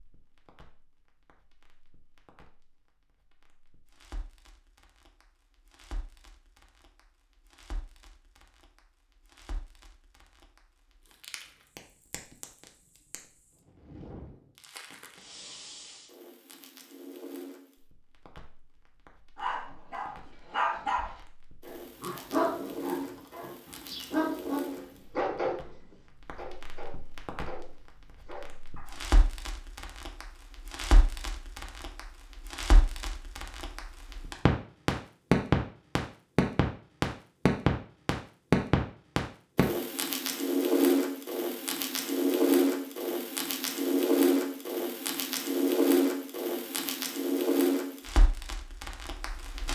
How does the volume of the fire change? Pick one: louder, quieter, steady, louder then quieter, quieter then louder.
louder.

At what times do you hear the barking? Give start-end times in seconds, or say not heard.
19.4-25.7, 26.4-28.9.